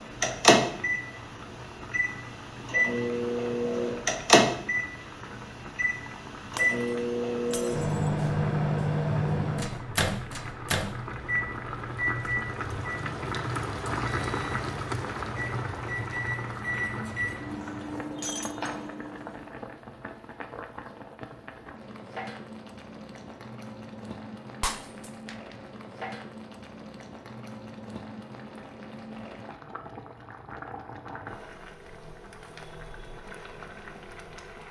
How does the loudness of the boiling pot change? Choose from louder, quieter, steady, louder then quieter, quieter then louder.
louder then quieter.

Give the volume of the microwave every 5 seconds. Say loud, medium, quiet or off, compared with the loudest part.
loud, loud, medium, medium, off, off, off.